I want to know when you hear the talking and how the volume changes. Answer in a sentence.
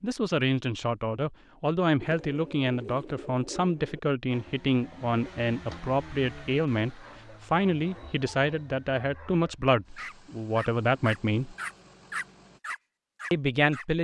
You can hear the talking from 0.0 to 11.6 s, at a steady volume; and briefly from 13.3 to 14.0 s.